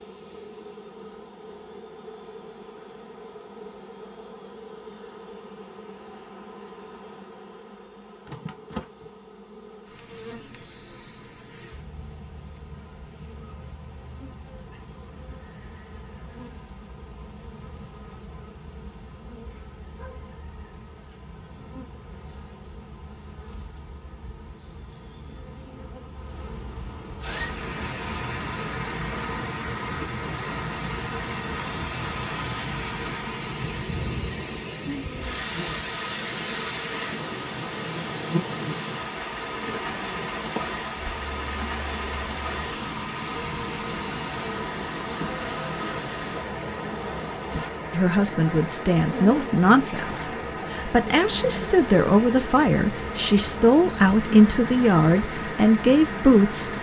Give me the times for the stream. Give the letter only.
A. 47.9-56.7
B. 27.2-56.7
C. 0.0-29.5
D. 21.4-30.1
B.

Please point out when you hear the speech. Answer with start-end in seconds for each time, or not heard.
47.9-56.7.